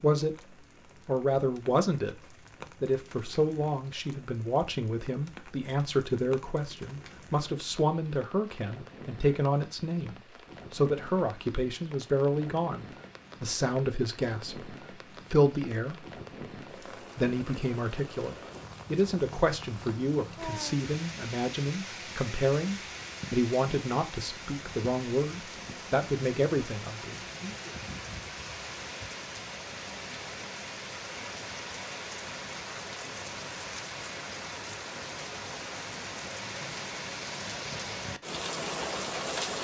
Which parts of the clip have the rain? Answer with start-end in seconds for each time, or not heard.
0.0-39.5.